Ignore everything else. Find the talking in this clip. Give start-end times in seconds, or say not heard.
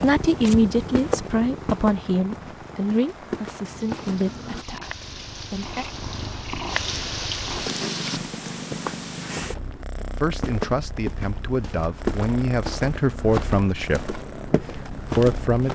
0.0-5.8, 10.2-14.2, 15.2-15.7.